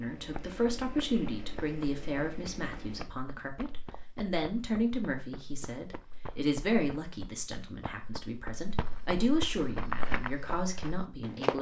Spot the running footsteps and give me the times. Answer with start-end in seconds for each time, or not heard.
0.1-11.5.